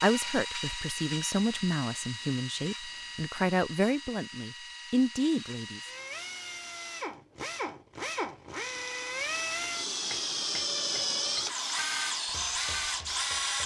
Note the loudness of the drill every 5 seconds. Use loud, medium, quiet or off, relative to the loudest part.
medium, medium, loud.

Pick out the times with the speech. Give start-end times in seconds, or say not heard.
0.0-5.8.